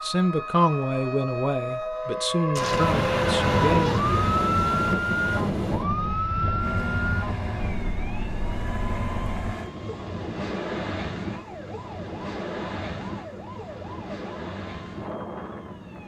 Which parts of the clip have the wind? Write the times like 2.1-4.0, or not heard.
2.5-16.0.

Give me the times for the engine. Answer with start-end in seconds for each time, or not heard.
6.5-9.7.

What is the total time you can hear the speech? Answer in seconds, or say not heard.
4 s.